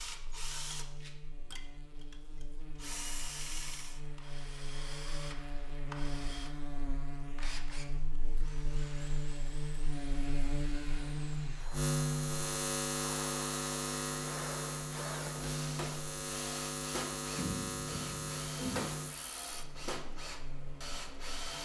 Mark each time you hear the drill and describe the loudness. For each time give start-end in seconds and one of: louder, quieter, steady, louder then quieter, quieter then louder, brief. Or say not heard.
0.0-21.6 quieter then louder.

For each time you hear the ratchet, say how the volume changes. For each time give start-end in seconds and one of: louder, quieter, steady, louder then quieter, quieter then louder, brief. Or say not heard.
not heard.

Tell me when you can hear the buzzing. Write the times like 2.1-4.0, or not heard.
0.0-21.6.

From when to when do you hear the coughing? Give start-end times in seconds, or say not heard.
17.3-18.9.